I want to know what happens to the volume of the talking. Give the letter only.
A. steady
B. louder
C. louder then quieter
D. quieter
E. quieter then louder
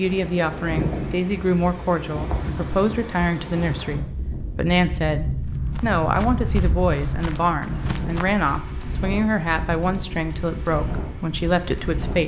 A.